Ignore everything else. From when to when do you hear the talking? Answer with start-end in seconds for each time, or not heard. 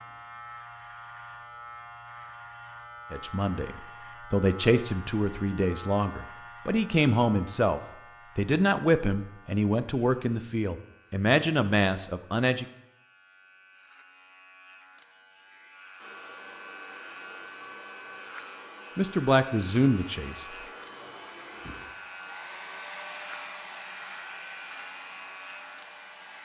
3.1-12.7, 18.9-20.4.